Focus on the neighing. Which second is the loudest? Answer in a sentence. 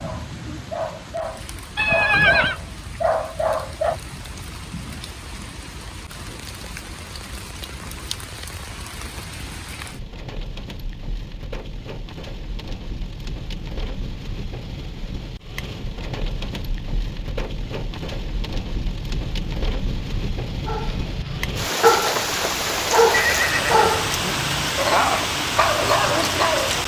The volume of the neighing peaks at 2 seconds.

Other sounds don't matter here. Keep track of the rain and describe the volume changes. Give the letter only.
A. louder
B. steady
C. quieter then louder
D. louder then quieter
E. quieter
A.